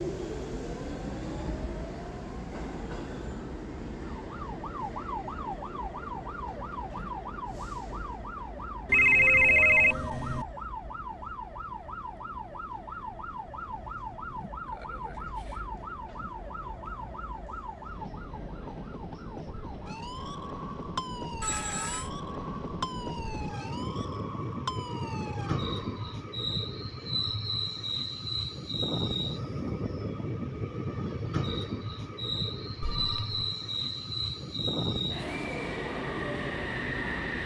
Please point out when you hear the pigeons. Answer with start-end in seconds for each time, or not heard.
not heard.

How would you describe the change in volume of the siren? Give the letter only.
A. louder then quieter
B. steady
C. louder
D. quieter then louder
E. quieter
B.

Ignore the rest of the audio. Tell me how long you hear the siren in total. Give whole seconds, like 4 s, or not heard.
22 s.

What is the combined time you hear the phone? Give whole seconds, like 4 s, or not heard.
3 s.